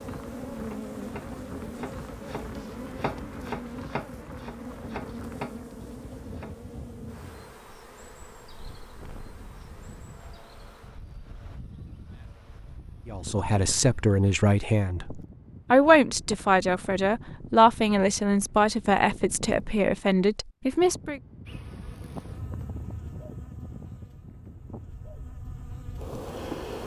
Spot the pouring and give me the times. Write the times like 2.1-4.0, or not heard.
not heard.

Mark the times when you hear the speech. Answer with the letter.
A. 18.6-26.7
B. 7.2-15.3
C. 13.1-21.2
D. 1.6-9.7
C.